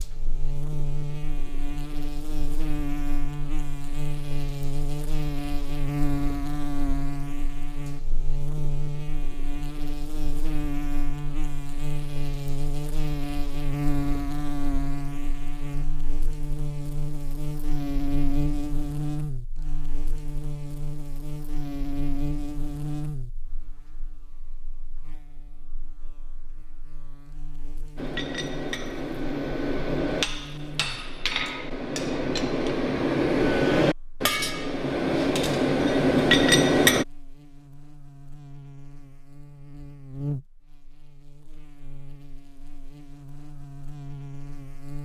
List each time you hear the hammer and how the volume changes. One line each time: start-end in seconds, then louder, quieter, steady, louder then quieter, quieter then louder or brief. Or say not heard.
27.9-37.0 louder.